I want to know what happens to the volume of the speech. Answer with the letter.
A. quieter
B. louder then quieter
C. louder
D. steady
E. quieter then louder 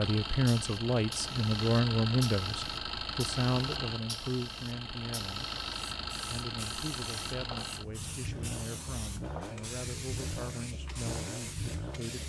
A.